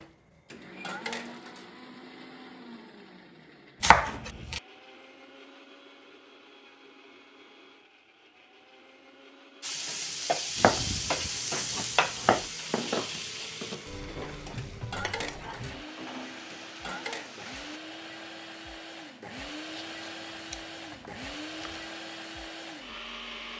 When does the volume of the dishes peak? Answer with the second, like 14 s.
13 s.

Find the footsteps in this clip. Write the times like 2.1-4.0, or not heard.
not heard.